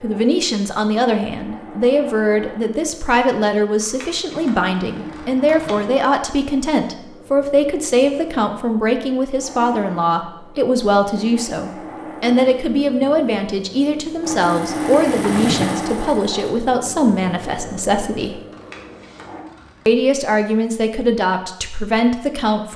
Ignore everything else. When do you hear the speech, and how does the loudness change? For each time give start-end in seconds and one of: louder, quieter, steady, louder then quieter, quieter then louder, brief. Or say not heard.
0.0-18.4 steady
19.9-22.7 brief.